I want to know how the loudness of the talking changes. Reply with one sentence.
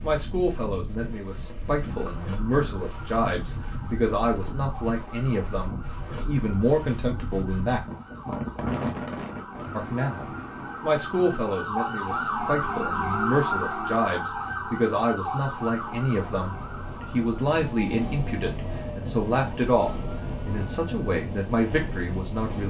The loudness of the talking stays about the same.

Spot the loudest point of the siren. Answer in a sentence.
The loudest moment of the siren is at 13 seconds.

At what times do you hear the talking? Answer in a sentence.
The talking can be heard from 0.0 to 7.8 s and from 9.8 to 22.6 s.